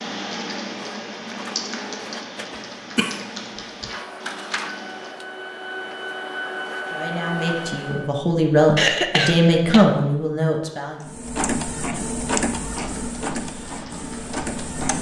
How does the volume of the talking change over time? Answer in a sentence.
The loudness of the talking goes up, then down.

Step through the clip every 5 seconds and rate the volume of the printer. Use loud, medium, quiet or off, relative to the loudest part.
medium, loud, loud.